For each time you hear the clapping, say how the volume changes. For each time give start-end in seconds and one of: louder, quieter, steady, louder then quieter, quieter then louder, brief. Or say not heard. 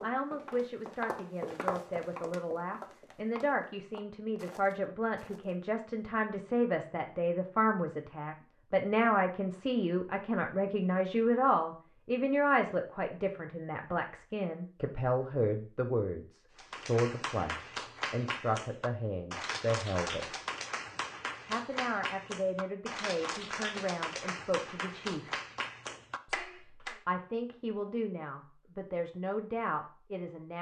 16.6-27.0 steady.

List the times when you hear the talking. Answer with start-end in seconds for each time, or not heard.
0.0-20.4, 21.4-25.4, 26.2-30.5.